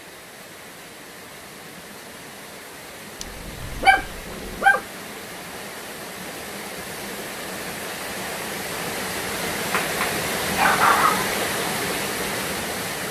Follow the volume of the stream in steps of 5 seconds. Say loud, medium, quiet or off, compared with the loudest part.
quiet, medium, loud.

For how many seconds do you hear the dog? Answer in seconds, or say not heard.
3 s.